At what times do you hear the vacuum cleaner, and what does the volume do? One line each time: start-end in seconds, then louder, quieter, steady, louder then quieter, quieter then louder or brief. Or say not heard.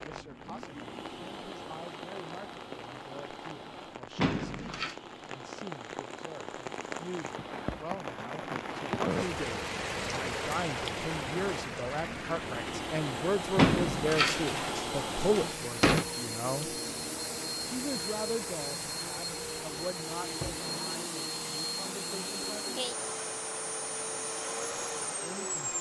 0.0-25.7 louder.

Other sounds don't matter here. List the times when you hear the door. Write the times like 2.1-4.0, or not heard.
4.2-5.0, 13.6-16.1.